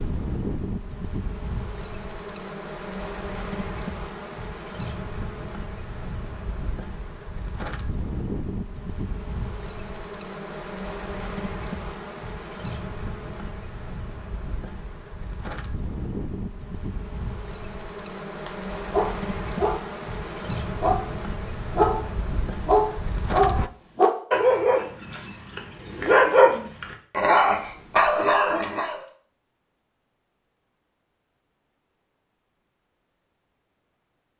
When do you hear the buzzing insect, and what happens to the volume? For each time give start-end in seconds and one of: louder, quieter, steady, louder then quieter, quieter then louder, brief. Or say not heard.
0.0-23.7 steady.